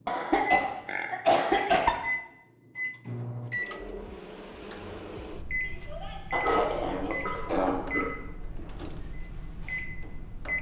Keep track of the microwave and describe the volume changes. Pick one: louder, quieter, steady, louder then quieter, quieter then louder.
quieter.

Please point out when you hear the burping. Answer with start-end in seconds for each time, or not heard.
0.8-2.0, 6.4-8.2.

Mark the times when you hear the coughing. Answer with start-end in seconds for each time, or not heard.
0.1-1.9, 5.9-7.8.